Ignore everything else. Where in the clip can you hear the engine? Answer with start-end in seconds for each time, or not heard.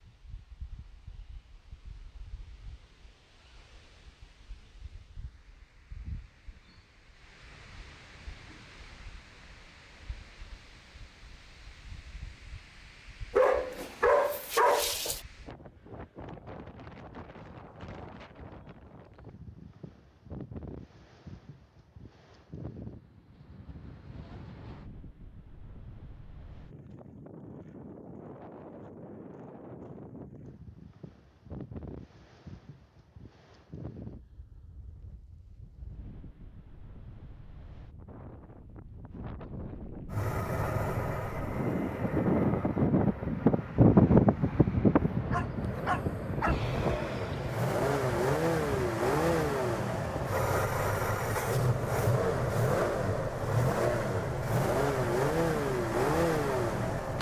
40.1-57.1.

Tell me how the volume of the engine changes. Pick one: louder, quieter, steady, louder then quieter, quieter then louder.
louder.